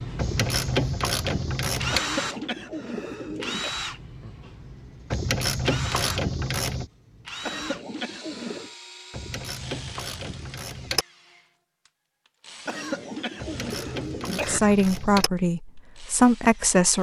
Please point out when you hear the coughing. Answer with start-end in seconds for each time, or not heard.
1.9-3.8, 7.4-8.7, 12.7-14.6.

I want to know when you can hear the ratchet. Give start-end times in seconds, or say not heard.
0.1-2.0, 5.1-6.9, 9.1-11.1, 13.3-15.3.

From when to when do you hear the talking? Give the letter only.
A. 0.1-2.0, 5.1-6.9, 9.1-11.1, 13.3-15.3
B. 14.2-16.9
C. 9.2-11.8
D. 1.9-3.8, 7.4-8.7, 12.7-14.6
B.